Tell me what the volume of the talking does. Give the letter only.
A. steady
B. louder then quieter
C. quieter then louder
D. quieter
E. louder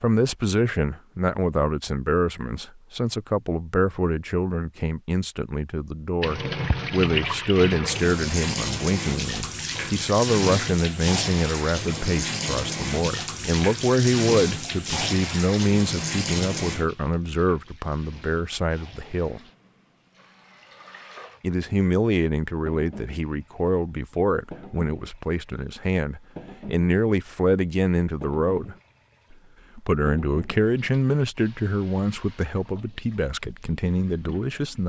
A.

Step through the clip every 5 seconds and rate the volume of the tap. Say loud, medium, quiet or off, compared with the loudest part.
off, loud, loud, medium, quiet, quiet, quiet.